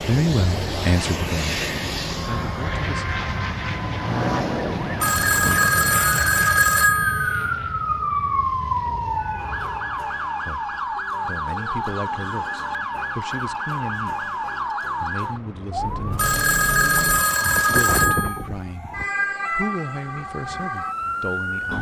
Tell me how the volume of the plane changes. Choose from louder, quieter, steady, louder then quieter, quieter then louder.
quieter.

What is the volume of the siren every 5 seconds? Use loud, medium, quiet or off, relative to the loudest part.
medium, loud, loud, loud, loud.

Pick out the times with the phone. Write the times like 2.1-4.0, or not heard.
5.0-7.5, 16.1-18.4.